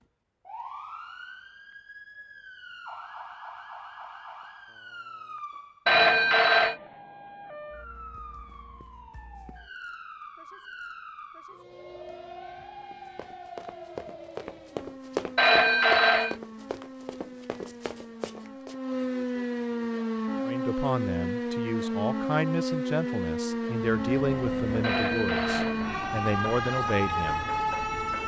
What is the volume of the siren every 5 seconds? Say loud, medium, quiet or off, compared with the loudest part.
quiet, quiet, quiet, medium, loud, loud.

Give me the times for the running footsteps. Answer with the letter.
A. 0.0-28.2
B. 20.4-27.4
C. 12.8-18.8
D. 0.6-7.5
C.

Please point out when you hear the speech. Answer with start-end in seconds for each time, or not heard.
20.4-27.4.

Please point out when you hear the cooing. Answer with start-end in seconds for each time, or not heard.
not heard.